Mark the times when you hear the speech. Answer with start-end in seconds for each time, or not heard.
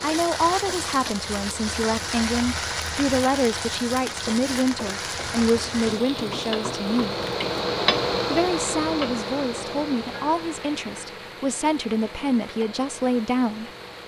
0.0-7.2, 8.3-13.7.